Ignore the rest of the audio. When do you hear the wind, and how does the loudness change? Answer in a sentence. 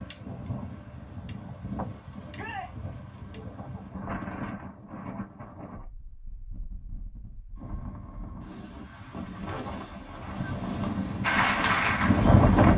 You can hear the wind from 0.0 to 12.7 s, getting quieter then louder.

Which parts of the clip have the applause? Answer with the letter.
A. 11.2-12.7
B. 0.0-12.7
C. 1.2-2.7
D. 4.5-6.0
A.